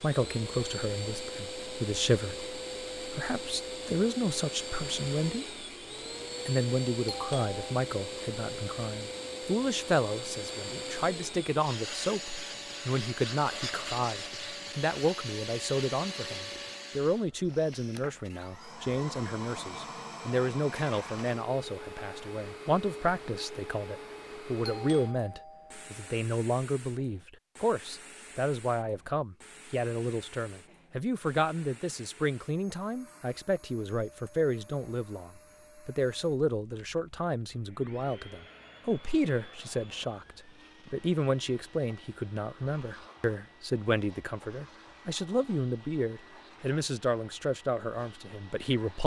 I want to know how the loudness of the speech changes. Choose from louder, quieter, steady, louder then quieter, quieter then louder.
steady.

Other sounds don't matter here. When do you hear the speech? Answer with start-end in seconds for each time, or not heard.
0.0-5.5, 6.5-49.0.